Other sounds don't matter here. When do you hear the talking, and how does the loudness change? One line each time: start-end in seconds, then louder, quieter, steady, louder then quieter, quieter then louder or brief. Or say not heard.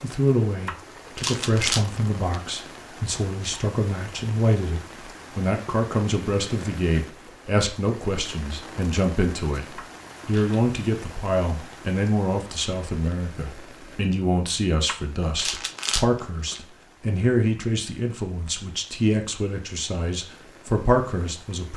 0.0-21.7 steady.